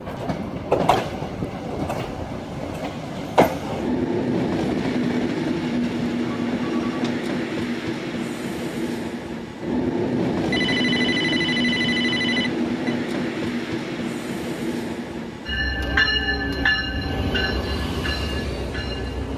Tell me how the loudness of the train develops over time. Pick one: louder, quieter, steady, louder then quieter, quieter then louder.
steady.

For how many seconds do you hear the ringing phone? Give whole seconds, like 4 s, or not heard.
3 s.